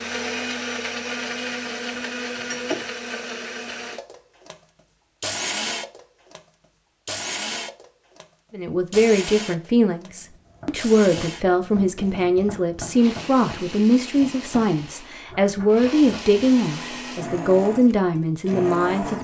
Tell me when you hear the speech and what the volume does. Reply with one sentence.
The speech can be heard from 8.5 to 19.1 s, at a steady volume.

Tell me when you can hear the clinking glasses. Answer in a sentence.
You can hear the clinking glasses from 1.9 to 2.9 s.